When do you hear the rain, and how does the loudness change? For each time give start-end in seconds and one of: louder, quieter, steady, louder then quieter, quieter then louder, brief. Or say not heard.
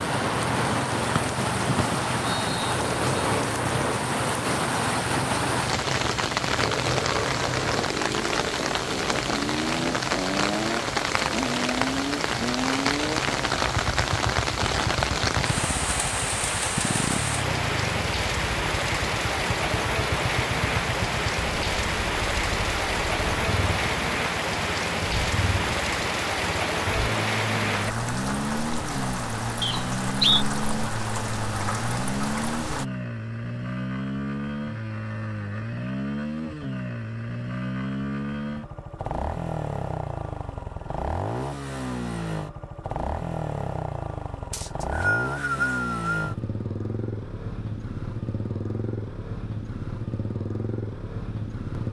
0.0-32.9 steady.